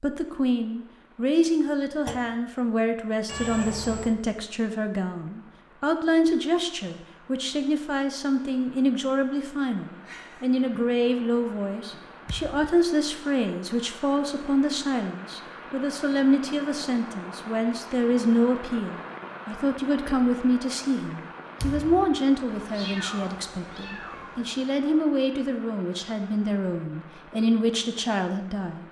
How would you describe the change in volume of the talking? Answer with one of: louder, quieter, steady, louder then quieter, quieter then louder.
steady.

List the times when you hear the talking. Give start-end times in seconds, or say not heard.
0.0-28.8.